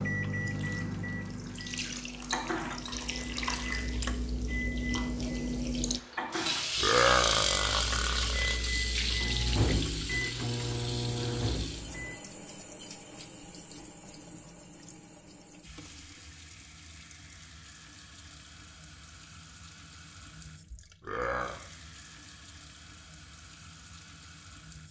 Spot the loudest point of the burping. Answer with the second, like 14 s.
7 s.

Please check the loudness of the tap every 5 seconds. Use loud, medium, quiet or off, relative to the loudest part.
medium, loud, medium, quiet, quiet.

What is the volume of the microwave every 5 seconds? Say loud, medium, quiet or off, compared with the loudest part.
loud, loud, loud, off, off.